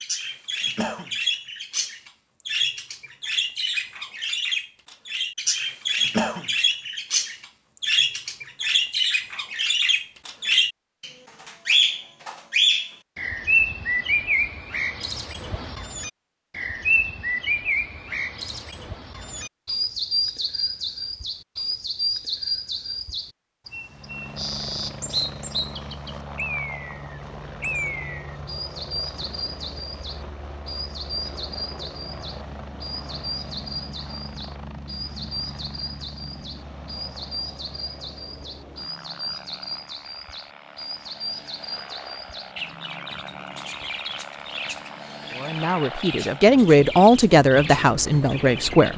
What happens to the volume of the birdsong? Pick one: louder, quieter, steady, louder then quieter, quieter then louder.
quieter.